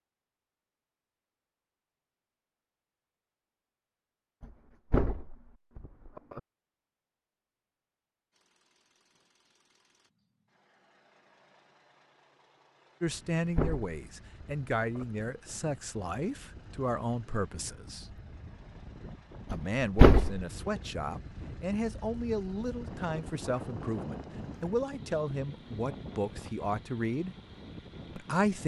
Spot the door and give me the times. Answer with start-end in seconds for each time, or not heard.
4.4-6.4, 13.1-15.1, 19.5-20.4.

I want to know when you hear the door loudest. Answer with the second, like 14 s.
20 s.